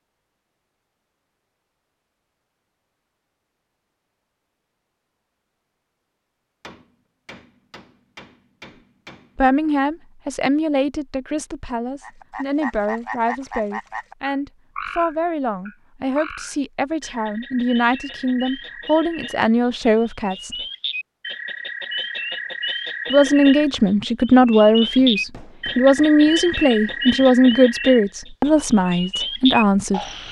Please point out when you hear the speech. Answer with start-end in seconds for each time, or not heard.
9.3-20.6, 23.1-30.1.